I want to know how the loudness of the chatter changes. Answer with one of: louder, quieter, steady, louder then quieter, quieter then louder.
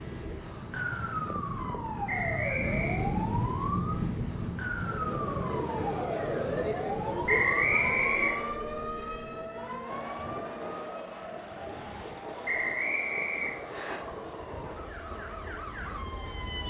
quieter.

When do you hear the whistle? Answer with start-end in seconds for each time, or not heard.
2.0-3.0, 7.2-8.5, 12.4-14.0.